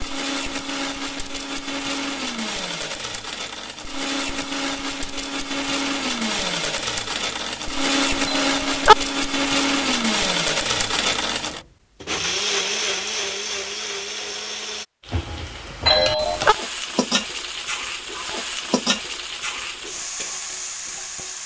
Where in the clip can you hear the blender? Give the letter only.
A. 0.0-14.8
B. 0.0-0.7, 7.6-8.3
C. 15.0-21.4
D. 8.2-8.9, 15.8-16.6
A.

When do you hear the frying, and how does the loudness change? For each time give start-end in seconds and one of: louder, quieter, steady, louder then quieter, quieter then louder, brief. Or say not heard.
15.0-21.4 steady.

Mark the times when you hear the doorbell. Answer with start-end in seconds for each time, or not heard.
8.2-8.9, 15.8-16.6.